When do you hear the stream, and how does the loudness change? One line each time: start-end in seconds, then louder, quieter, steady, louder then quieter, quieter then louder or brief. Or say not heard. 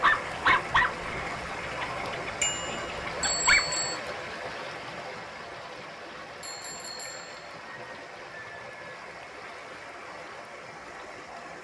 0.0-11.5 quieter.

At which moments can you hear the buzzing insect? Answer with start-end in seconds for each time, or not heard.
not heard.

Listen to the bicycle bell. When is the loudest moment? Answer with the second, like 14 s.
3 s.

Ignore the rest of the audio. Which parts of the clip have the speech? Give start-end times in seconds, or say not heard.
not heard.